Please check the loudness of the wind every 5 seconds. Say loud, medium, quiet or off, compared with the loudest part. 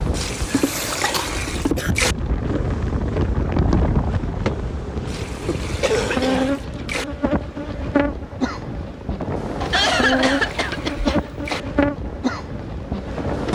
loud, medium, medium.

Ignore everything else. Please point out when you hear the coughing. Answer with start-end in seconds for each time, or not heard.
0.5-1.9, 5.8-6.5, 9.6-11.6.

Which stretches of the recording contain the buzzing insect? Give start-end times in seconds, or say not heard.
0.0-13.5.